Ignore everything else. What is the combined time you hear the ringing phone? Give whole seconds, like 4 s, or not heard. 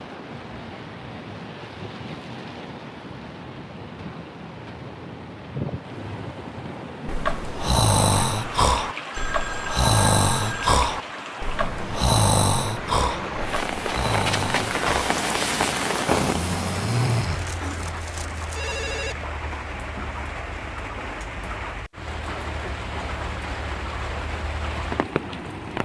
4 s.